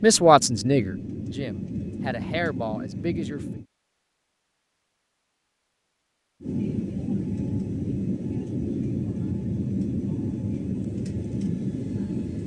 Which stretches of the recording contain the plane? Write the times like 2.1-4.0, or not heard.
0.0-3.6, 6.4-12.4.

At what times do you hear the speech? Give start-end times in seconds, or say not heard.
0.0-3.5.